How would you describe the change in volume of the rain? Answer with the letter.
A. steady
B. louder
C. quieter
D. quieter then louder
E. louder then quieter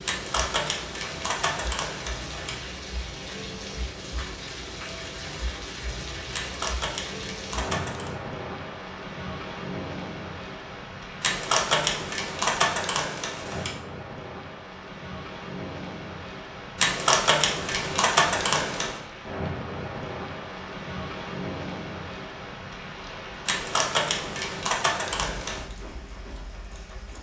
A.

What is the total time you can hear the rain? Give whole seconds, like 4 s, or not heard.
27 s.